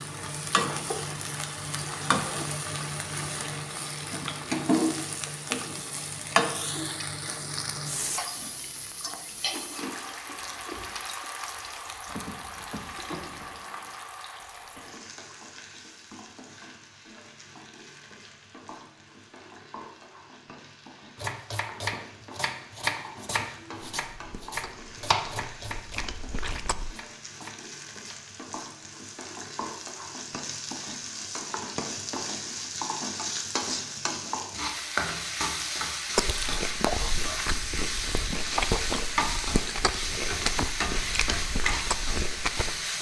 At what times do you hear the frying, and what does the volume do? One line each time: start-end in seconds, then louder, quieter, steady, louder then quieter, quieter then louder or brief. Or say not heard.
0.0-42.9 quieter then louder.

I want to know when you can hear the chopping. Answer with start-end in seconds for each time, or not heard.
21.1-28.1.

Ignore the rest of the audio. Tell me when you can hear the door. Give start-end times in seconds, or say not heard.
13.1-13.9.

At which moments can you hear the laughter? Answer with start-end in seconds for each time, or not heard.
not heard.